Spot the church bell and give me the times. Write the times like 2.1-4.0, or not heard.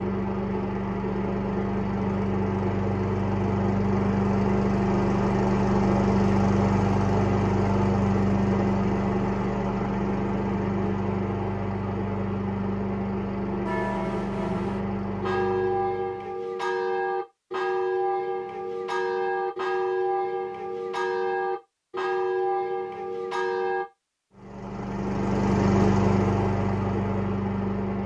13.7-23.9.